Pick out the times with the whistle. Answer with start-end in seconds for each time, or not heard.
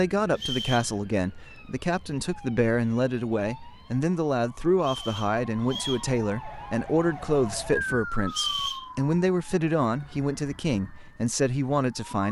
0.3-0.9, 4.8-6.1, 8.2-8.8.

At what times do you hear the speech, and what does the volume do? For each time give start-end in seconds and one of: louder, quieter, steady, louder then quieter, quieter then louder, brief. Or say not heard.
0.0-12.2 steady.